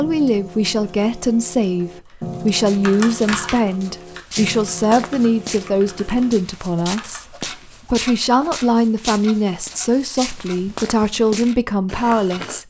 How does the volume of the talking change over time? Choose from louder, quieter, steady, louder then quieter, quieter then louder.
steady.